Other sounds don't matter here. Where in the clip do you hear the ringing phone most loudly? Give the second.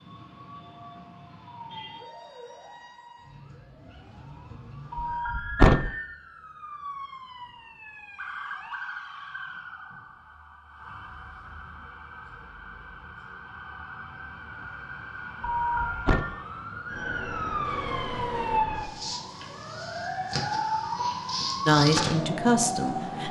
16 s.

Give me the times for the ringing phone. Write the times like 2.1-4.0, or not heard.
4.9-6.0, 15.4-16.2.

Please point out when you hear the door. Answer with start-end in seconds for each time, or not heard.
5.0-5.9, 15.7-16.2.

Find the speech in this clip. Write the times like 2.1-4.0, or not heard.
21.6-23.2.